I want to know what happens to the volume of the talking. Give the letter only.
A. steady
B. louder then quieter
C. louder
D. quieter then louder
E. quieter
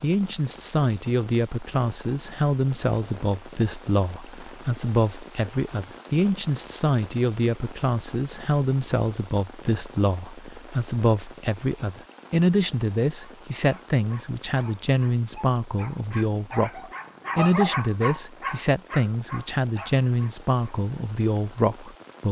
A.